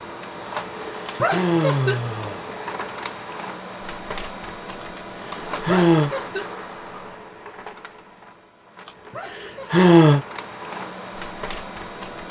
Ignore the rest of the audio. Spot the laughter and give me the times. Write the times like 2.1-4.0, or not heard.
1.1-2.0, 5.7-6.5, 9.1-9.9.